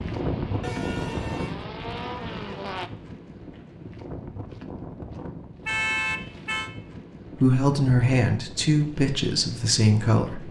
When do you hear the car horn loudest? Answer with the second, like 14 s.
6 s.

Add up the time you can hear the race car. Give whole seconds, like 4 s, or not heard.
3 s.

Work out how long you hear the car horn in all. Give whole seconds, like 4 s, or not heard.
2 s.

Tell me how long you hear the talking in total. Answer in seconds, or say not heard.
3 s.